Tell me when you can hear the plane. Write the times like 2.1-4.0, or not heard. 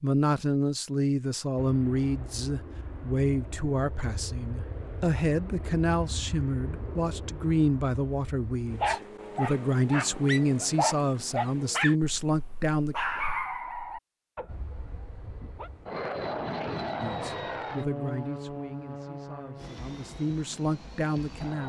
1.6-8.9, 14.4-21.6.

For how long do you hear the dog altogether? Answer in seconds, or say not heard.
7 s.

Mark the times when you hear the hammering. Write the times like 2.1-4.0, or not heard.
not heard.